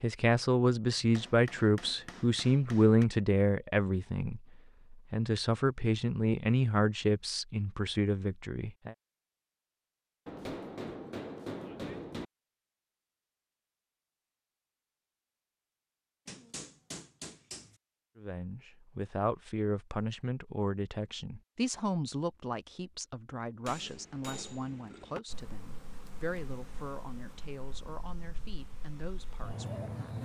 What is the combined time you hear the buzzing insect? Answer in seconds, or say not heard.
5 s.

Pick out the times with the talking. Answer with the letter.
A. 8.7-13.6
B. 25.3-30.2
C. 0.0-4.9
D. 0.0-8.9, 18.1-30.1
D.